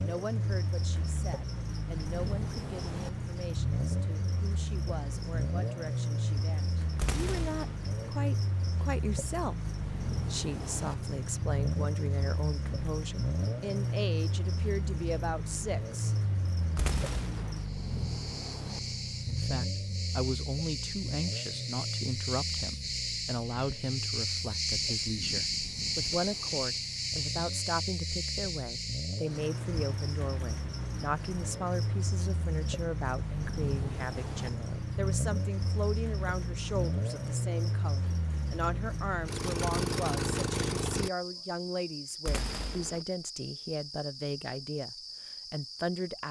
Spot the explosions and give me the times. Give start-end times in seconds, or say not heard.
7.0-7.8, 16.8-17.6, 42.2-43.0.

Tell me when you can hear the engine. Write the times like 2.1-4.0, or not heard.
0.0-41.1.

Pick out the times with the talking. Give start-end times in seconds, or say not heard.
0.0-16.1, 19.2-46.2.